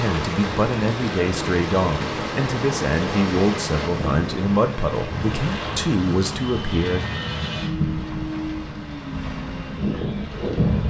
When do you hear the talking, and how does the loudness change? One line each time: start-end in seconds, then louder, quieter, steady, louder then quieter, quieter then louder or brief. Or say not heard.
0.0-7.0 steady.